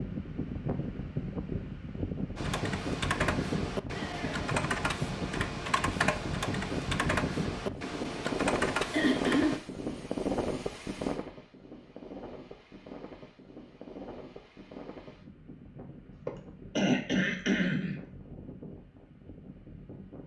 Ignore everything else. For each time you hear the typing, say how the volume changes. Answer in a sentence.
You can hear the typing from 2.4 to 9.6 s, at a steady volume.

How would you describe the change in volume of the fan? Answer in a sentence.
The loudness of the fan goes down.